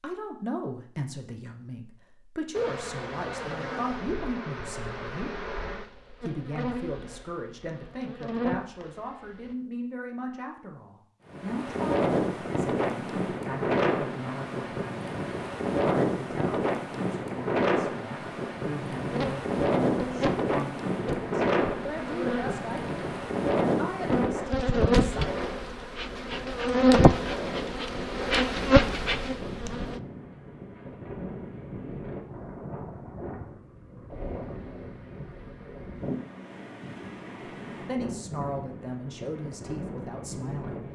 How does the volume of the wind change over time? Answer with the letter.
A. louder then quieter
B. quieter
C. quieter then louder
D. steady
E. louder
B.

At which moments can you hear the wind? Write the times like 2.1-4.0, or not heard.
11.2-40.8.